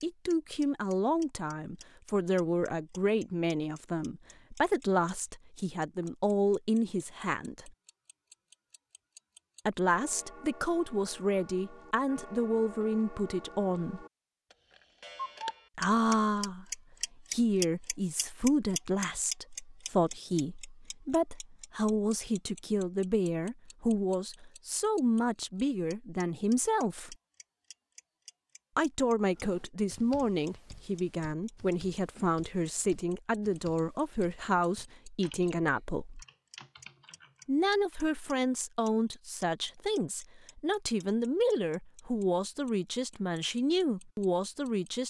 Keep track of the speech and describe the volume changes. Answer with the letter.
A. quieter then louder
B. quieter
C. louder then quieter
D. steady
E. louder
D.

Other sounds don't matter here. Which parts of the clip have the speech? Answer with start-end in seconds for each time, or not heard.
0.0-7.7, 9.7-14.1, 15.8-27.1, 28.8-36.2, 37.5-45.0.